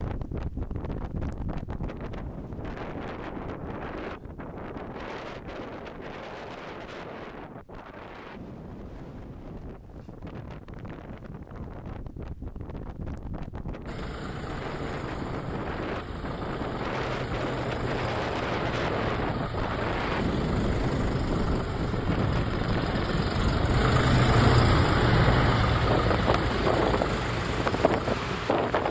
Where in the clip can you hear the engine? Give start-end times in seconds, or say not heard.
13.8-28.8.